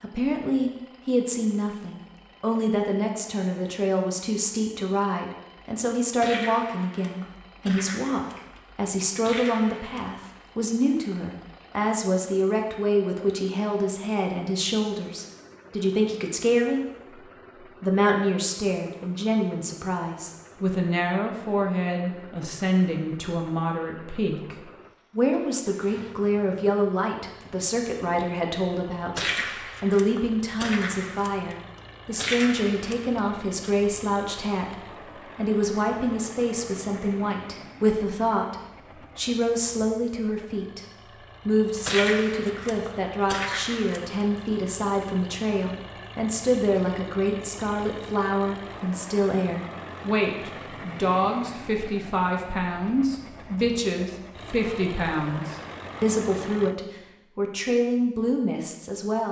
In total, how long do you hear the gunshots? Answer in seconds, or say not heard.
10 s.